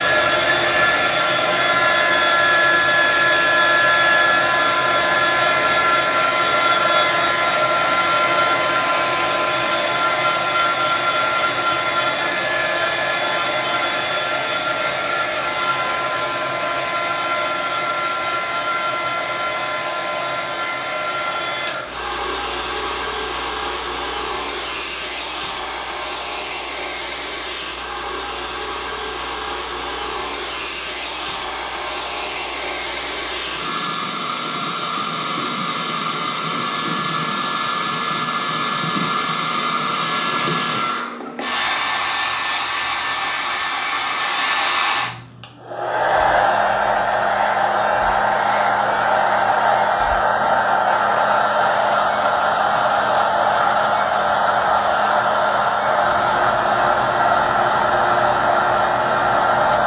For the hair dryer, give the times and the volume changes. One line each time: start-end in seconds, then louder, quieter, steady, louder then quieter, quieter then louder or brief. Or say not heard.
0.0-59.8 quieter then louder.